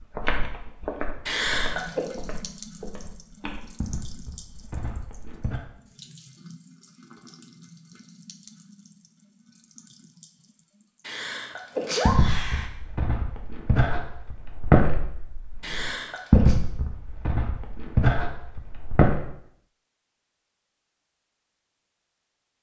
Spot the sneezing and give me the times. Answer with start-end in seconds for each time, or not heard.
1.2-2.0, 11.1-12.7, 15.6-16.6.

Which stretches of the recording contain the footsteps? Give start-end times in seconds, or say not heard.
0.0-5.6, 12.1-19.2.